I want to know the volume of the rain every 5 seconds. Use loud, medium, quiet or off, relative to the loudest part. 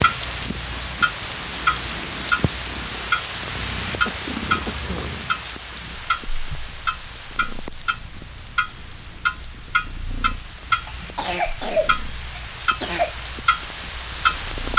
loud, medium, medium.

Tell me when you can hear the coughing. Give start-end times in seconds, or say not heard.
4.0-5.2, 10.8-13.2.